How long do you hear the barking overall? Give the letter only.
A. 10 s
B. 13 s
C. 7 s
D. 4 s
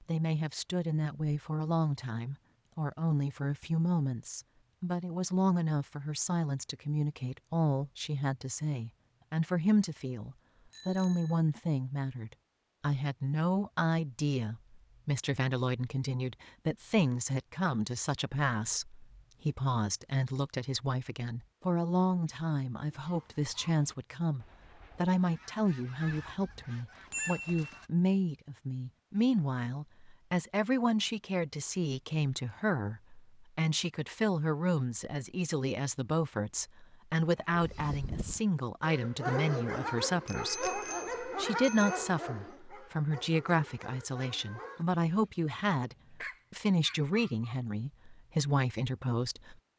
A.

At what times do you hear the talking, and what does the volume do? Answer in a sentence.
The talking can be heard from 0.1 to 49.5 s, at a steady volume.